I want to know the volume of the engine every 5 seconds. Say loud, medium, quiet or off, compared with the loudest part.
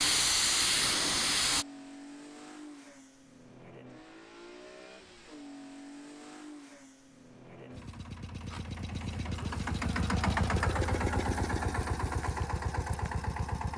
quiet, medium, loud.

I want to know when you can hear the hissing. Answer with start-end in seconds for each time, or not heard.
0.0-1.6.